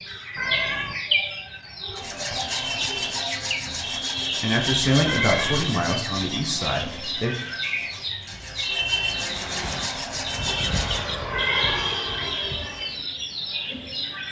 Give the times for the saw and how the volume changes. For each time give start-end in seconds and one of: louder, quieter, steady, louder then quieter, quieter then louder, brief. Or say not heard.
1.9-11.1 quieter then louder.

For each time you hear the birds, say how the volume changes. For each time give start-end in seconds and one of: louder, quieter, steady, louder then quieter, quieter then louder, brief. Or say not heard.
0.0-14.2 steady.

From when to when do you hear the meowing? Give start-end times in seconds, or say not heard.
0.3-0.9, 5.0-5.7, 11.3-11.9.